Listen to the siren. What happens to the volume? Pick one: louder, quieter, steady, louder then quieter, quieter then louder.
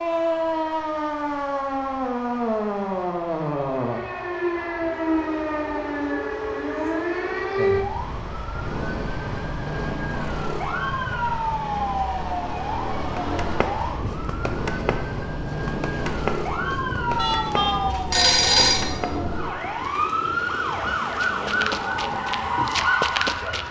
steady.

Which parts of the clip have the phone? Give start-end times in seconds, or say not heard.
17.1-18.9.